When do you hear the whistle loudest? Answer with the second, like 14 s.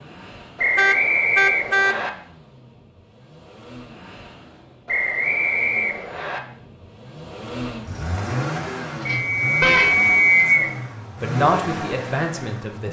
10 s.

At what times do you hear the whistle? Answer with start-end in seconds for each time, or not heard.
0.6-2.1, 4.8-6.4, 9.1-10.7.